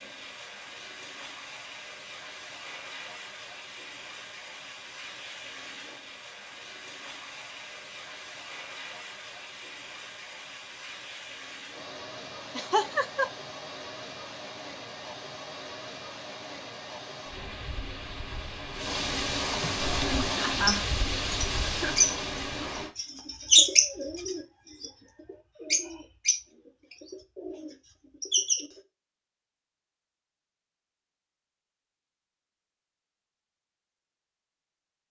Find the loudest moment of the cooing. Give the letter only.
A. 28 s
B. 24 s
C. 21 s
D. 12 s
B.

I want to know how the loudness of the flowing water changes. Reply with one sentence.
The volume of the flowing water goes up.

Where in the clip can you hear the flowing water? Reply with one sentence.
You can hear the flowing water from 0.0 to 22.9 s.